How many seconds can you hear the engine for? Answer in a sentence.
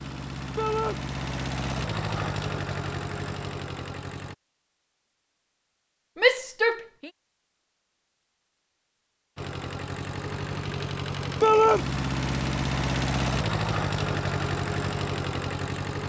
You can hear the engine for 11 seconds altogether.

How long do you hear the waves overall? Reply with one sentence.
The waves can't be heard in this clip.